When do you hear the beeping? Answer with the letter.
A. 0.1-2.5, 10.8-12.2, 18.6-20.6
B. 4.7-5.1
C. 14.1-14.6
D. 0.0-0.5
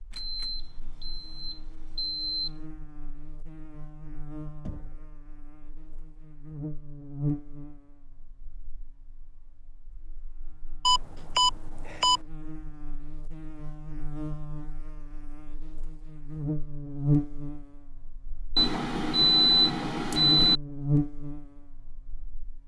A.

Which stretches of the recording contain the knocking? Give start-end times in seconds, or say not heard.
4.7-5.1.